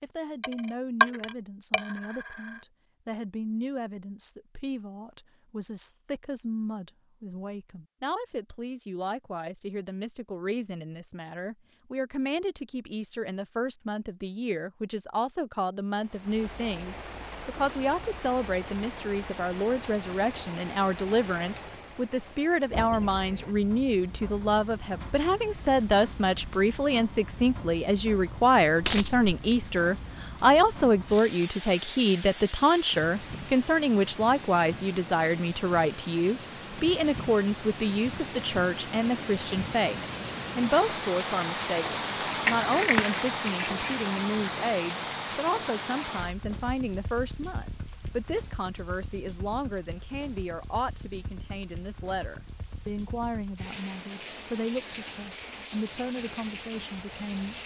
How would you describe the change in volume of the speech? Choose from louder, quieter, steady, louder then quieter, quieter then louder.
louder then quieter.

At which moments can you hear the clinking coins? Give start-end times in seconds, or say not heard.
0.4-1.8, 28.8-29.3, 42.5-44.0.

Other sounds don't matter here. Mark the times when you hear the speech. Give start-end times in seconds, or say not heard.
0.0-57.5.